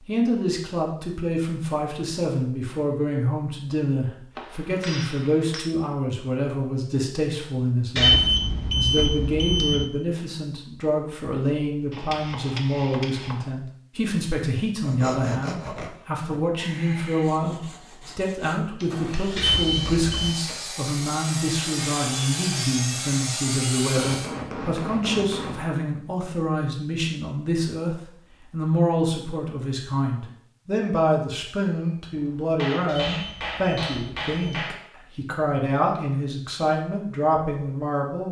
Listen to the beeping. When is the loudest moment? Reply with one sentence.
The loudest moment of the beeping is at 8 seconds.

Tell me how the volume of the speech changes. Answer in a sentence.
The loudness of the speech stays about the same.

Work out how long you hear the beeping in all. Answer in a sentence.
You can hear the beeping for 5 seconds altogether.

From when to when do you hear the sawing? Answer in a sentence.
The sawing can be heard from 14.8 to 24.4 s.